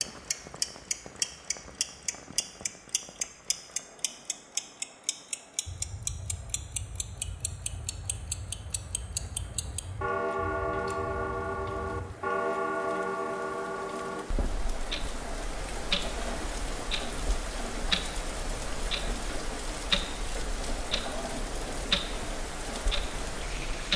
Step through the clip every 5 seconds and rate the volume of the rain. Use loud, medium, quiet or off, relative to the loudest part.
quiet, quiet, medium, loud, loud.